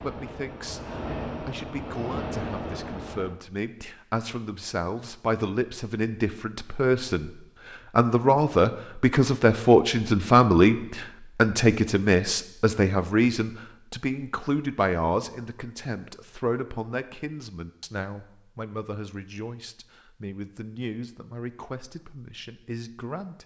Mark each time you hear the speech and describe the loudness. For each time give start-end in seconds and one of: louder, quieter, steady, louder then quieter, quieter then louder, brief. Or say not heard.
0.0-23.4 louder then quieter.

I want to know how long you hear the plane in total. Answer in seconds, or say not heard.
3 s.